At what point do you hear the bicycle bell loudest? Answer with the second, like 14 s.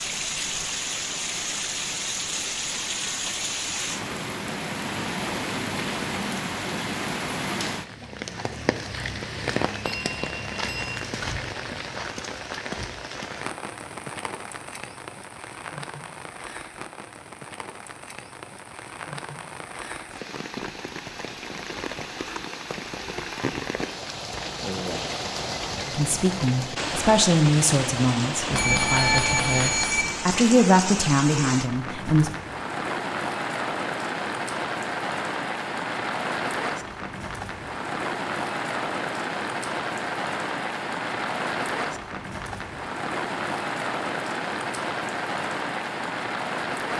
29 s.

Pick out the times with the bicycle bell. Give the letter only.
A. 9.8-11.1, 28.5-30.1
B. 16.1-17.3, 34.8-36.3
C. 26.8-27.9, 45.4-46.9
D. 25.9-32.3
A.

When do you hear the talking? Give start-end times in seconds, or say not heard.
25.9-32.3.